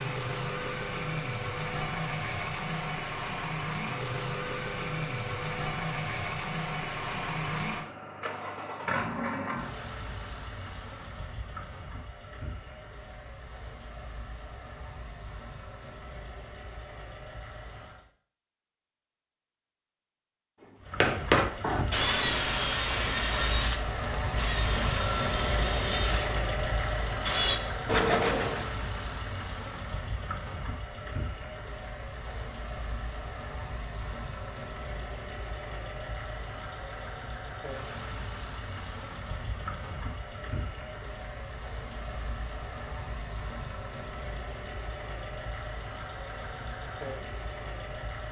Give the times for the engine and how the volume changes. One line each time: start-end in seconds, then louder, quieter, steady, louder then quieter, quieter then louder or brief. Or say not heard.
0.0-18.1 quieter
20.8-48.2 quieter.